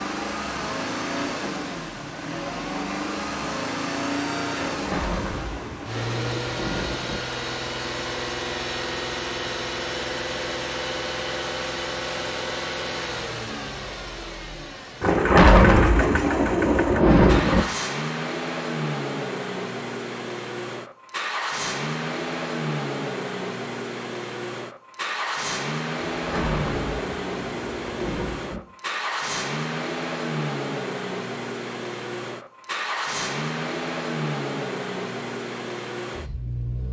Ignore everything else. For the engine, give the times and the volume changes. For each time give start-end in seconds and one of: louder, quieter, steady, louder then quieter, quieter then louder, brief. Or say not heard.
0.0-36.8 steady.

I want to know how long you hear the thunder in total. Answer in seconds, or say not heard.
8 s.